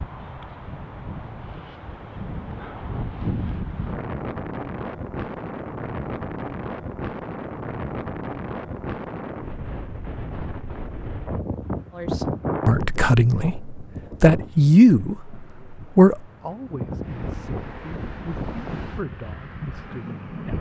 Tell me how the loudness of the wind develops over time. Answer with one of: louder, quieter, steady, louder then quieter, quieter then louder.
steady.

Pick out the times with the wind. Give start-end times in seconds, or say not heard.
0.0-20.5.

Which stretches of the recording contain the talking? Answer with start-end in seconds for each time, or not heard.
11.9-20.5.